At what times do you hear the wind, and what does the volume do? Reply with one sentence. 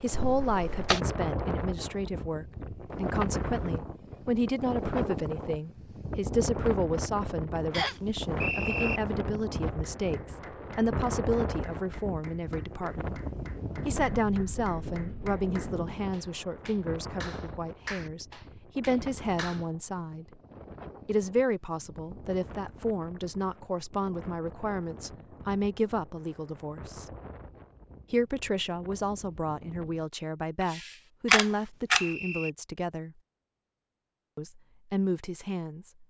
The wind can be heard from 0.0 to 30.1 s, getting quieter.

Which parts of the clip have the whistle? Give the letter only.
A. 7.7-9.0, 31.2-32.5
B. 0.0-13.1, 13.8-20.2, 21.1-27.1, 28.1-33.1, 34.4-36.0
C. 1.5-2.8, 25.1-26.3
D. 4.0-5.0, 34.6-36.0
A.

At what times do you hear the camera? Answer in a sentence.
The camera can be heard from 0.1 to 1.0 s and from 30.7 to 32.0 s.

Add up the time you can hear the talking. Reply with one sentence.
The talking can be heard for 32 seconds in total.